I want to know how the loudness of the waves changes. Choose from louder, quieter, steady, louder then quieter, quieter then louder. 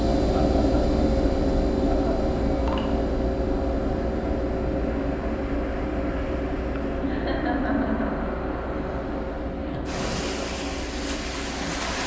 louder.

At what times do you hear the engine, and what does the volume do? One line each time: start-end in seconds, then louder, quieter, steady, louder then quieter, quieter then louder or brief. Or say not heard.
0.0-12.0 quieter.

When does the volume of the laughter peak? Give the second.
8 s.